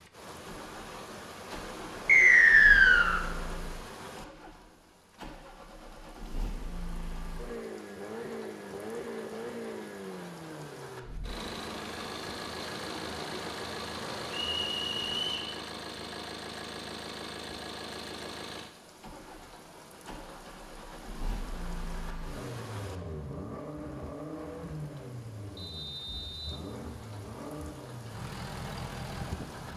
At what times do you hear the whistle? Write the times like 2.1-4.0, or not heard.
2.0-3.2, 14.3-15.5, 25.6-26.6.